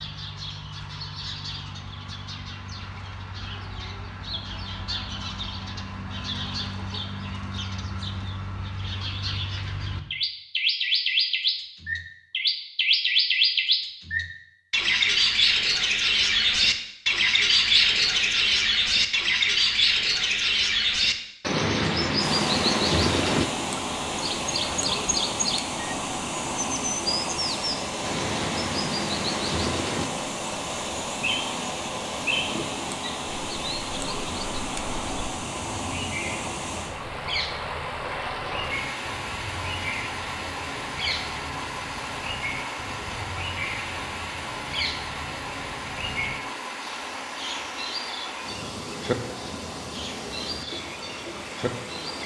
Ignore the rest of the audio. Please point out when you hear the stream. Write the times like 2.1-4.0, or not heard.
22.1-52.2.